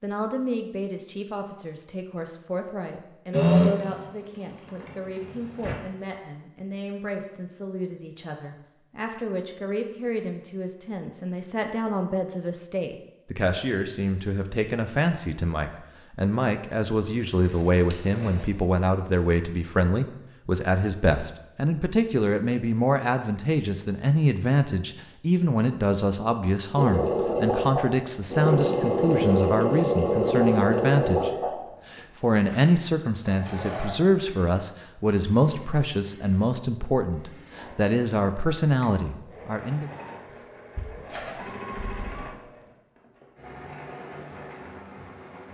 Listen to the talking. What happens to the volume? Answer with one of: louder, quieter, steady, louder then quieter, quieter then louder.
louder.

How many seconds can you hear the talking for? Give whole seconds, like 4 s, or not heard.
39 s.